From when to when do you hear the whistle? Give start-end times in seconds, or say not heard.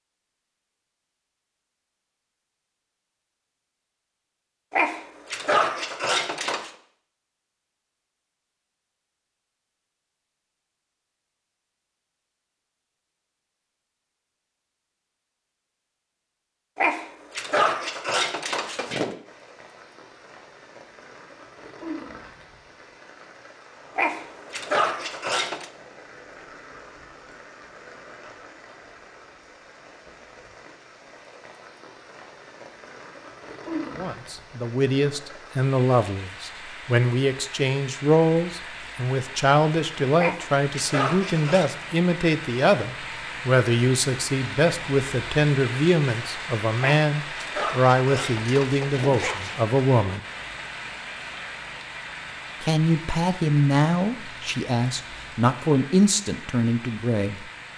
not heard.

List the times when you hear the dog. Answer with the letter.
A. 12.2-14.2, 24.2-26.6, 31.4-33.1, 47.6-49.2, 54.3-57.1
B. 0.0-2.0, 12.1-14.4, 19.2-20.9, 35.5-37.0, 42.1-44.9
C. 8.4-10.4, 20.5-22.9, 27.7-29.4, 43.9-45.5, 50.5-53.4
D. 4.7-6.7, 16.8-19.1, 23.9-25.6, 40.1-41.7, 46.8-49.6
D.